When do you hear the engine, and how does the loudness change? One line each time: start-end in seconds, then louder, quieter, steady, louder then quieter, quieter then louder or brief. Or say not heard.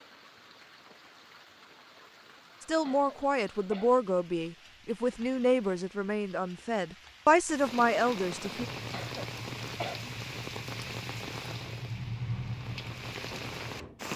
8.6-14.1 louder then quieter.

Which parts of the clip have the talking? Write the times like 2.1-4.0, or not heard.
2.6-8.7.